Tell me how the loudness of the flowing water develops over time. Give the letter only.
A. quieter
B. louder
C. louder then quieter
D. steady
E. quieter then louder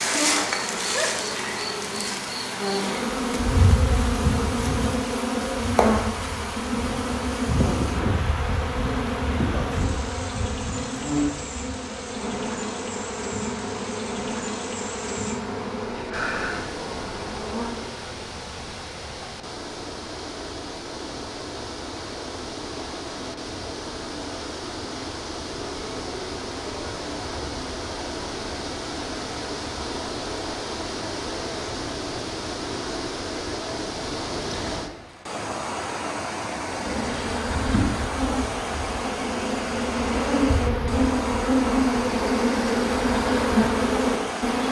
B.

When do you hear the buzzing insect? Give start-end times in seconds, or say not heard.
0.0-18.1, 36.6-44.6.